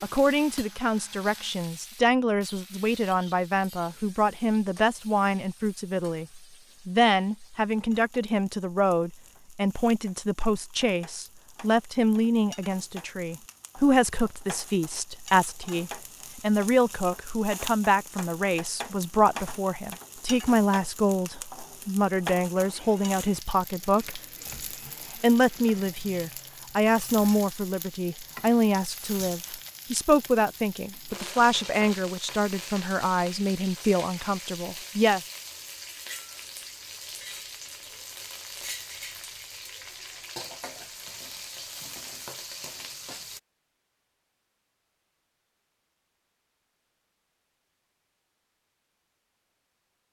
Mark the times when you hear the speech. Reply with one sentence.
You can hear the speech from 0.0 to 24.2 s and from 25.1 to 35.2 s.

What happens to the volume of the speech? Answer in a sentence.
The volume of the speech stays about the same.